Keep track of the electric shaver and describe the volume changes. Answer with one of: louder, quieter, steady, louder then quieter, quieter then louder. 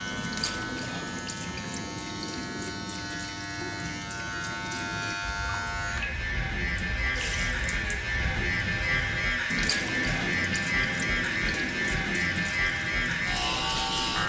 louder.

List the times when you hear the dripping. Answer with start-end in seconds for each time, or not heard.
0.0-14.2.